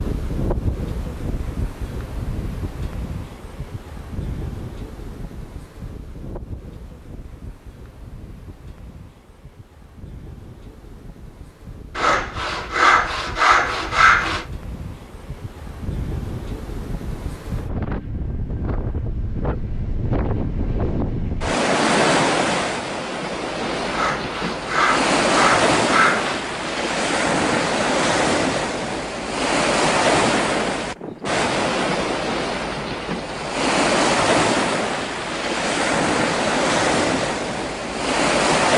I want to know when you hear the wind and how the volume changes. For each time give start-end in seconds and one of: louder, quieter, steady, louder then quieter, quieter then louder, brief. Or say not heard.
0.0-38.7 quieter then louder.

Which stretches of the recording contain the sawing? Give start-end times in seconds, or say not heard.
11.9-14.4, 23.9-26.4.